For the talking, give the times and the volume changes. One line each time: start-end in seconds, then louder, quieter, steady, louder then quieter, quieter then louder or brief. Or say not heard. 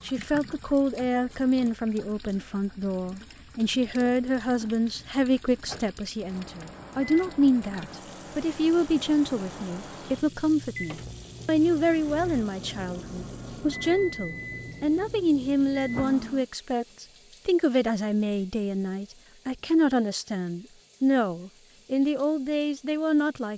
0.1-23.5 steady.